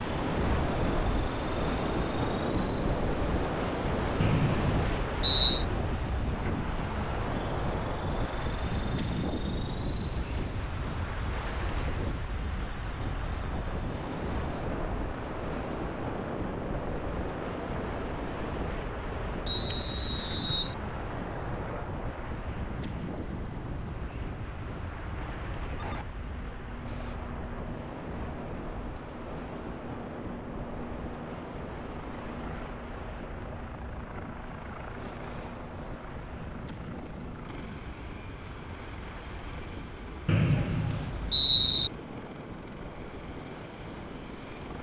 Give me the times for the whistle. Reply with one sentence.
The whistle can be heard from 4.2 to 5.7 s, from 19.4 to 20.8 s and from 40.2 to 41.9 s.